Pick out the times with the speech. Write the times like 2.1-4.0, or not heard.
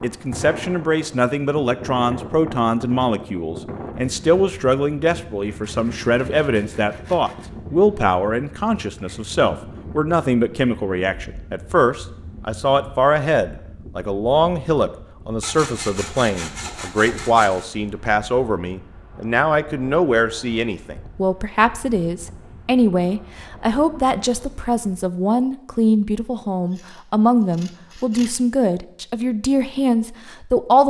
0.0-30.8.